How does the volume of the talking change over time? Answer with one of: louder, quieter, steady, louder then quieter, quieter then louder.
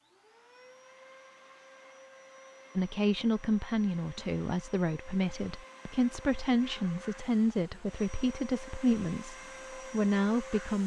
steady.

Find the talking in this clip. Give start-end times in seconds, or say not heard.
2.8-10.8.